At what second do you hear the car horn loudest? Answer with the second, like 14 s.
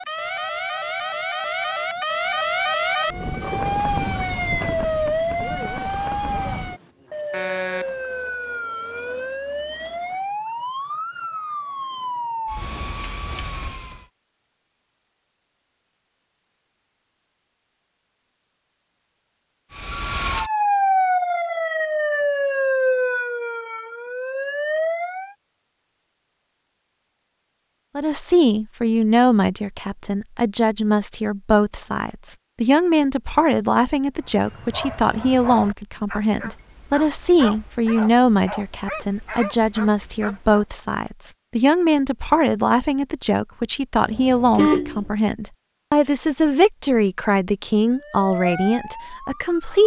45 s.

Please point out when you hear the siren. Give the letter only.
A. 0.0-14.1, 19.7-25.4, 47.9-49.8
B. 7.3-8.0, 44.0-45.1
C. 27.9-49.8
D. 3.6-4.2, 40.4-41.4
A.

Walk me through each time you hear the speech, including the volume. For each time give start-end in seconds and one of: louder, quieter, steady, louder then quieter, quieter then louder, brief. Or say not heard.
27.9-49.8 steady.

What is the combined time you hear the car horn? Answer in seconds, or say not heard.
2 s.